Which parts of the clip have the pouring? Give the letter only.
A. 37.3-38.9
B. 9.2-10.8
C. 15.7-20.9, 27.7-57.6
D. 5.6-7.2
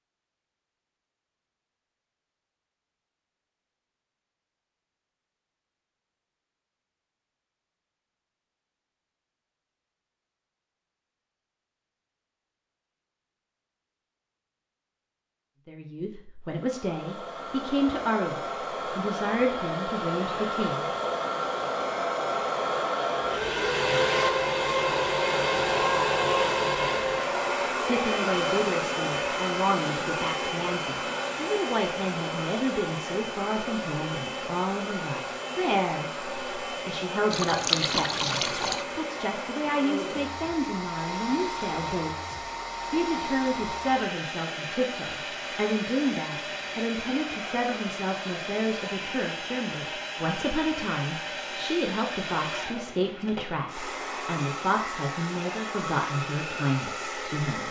A.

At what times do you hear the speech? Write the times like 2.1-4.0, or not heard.
15.7-20.9, 27.7-57.6.